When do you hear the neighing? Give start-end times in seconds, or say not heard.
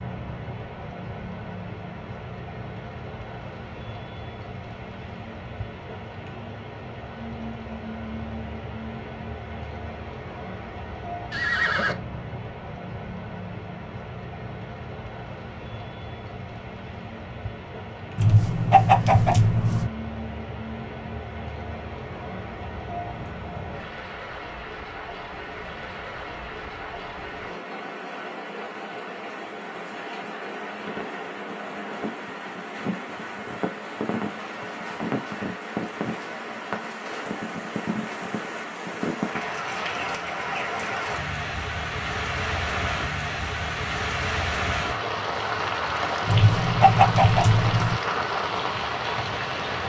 11.3-11.9.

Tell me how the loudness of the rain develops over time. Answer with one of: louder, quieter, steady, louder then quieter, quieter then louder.
louder.